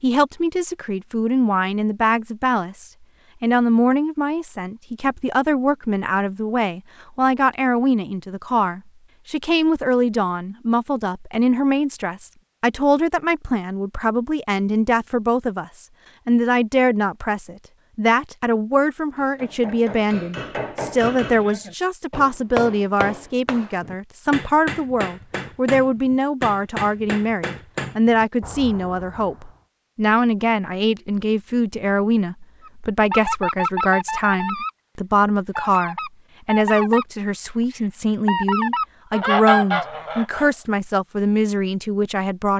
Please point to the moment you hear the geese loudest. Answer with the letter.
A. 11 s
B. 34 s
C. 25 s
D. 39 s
D.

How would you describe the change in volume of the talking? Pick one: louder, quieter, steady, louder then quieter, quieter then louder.
steady.